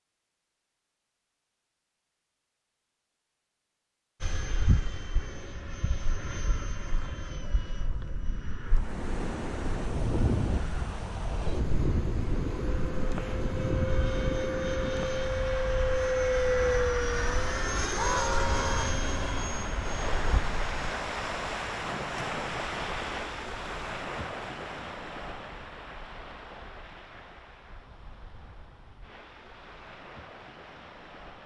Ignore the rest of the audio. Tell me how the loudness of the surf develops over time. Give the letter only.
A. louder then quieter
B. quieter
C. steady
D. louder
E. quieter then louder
B.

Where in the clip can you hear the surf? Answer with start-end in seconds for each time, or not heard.
8.7-31.4.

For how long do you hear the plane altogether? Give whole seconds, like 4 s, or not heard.
17 s.